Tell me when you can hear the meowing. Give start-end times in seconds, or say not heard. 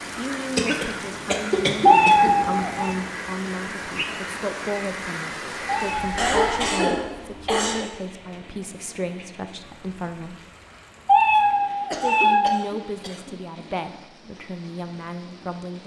1.9-3.0, 5.7-7.0, 11.1-12.7.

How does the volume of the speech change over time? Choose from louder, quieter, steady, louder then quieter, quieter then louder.
steady.